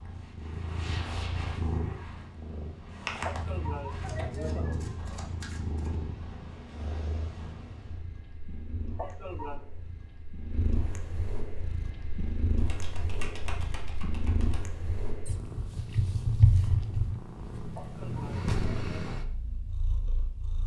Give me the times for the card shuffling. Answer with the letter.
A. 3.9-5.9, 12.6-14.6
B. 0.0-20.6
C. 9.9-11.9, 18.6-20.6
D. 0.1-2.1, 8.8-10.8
A.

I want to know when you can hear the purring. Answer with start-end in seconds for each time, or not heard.
0.0-20.6.